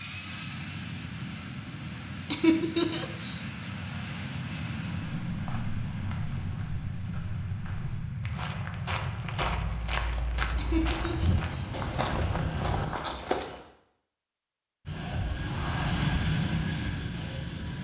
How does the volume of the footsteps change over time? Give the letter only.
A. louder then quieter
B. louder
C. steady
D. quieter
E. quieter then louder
B.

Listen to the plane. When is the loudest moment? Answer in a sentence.
The loudest moment of the plane is at 16 seconds.